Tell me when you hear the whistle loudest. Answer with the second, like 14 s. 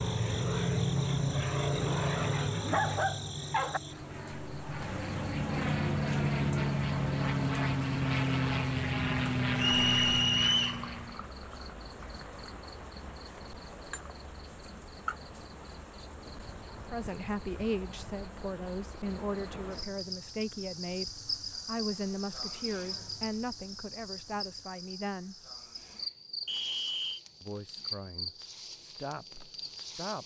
10 s.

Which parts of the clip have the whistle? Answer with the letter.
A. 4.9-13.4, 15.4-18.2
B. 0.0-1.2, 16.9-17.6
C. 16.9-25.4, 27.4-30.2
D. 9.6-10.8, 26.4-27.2
D.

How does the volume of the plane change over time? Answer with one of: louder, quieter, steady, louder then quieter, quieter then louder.
quieter then louder.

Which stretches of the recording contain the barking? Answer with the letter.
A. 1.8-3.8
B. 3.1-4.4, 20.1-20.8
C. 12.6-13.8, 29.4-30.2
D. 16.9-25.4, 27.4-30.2
A.